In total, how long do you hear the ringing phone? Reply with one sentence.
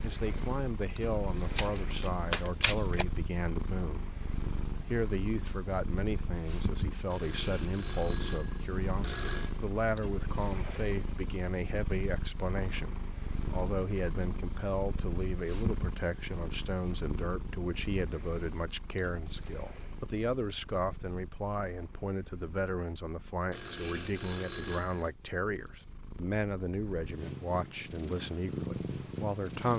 The ringing phone can be heard for 4 seconds in total.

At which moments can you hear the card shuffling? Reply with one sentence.
You can hear the card shuffling from 1.6 to 3.0 s.